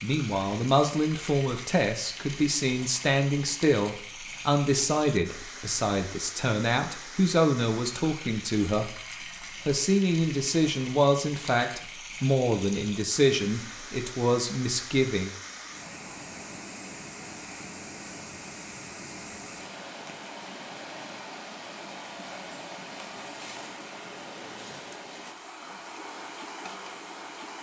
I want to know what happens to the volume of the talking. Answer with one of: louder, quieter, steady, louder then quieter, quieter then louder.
steady.